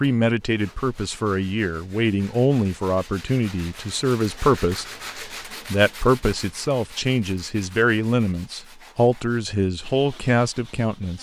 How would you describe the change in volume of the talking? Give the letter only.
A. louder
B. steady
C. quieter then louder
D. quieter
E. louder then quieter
B.